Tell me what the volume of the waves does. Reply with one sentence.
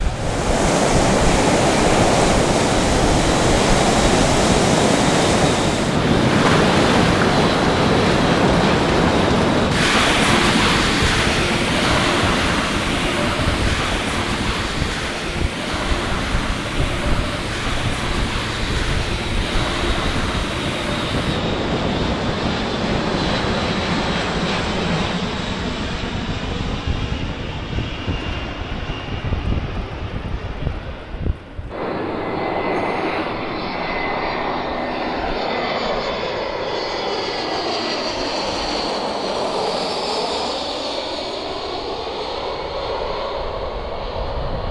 The volume of the waves goes down.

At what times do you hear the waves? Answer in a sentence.
You can hear the waves from 0.0 to 25.1 s.